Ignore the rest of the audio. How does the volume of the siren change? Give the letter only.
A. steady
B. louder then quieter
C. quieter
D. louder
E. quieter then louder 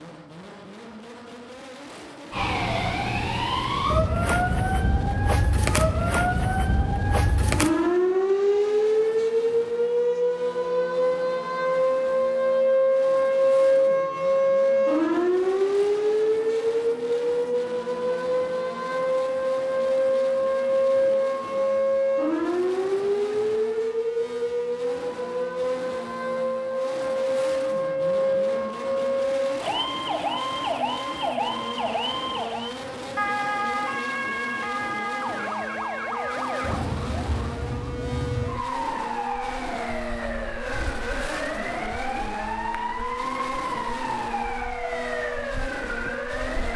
C.